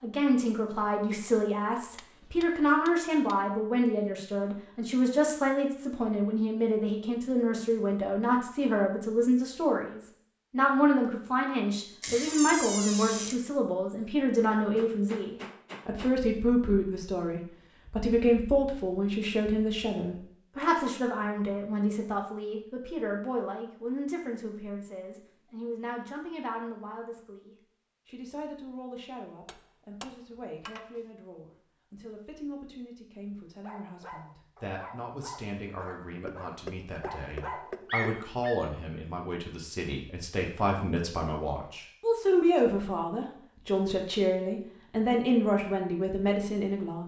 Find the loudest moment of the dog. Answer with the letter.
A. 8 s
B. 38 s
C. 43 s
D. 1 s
B.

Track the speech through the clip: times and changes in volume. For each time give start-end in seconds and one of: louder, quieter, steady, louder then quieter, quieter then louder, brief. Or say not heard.
0.0-47.0 quieter then louder.